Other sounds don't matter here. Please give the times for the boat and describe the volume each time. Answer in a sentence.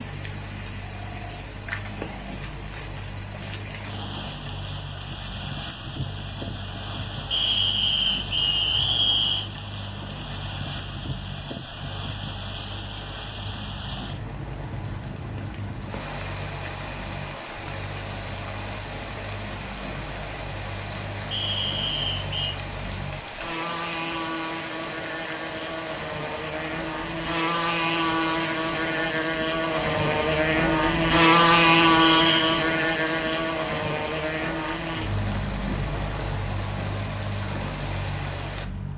The boat can be heard from 0.0 to 38.9 s, getting louder.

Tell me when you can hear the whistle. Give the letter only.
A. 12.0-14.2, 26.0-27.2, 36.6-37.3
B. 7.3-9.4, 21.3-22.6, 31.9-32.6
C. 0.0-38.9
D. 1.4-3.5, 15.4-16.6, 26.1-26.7
B.